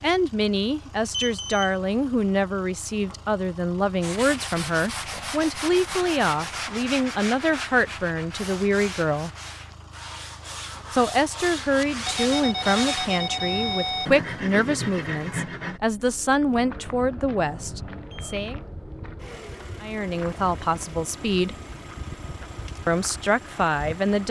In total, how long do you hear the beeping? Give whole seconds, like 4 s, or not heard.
4 s.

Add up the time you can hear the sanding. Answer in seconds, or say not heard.
12 s.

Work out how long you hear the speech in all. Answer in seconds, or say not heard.
20 s.